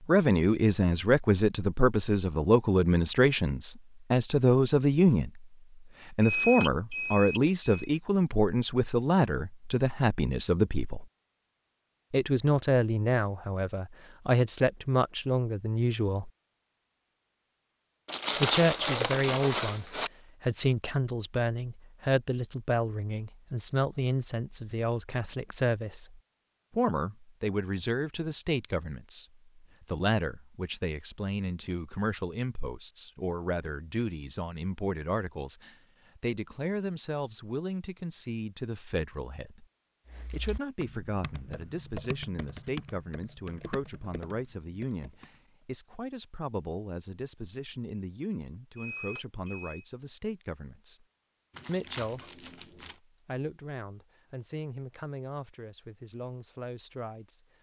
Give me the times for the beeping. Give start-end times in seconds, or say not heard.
6.2-7.9, 48.8-49.9.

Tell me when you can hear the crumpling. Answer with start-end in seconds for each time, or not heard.
18.1-20.1, 51.5-53.0.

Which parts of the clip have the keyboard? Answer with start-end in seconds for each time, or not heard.
40.1-45.4.